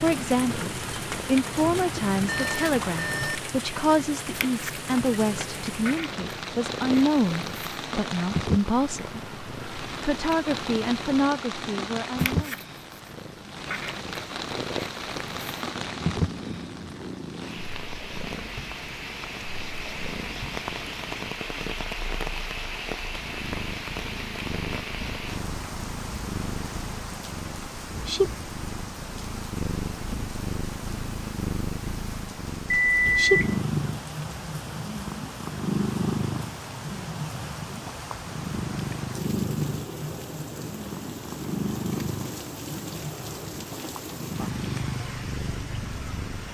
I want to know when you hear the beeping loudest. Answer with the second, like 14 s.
33 s.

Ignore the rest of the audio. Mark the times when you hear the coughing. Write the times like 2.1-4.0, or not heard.
not heard.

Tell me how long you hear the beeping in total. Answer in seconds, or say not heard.
2 s.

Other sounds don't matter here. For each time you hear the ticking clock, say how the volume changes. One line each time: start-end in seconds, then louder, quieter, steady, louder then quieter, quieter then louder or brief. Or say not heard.
not heard.